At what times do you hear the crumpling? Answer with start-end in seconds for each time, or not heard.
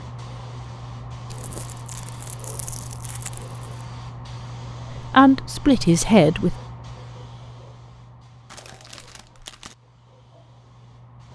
1.3-3.6, 8.4-9.8.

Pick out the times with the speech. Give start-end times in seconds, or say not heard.
5.1-6.5.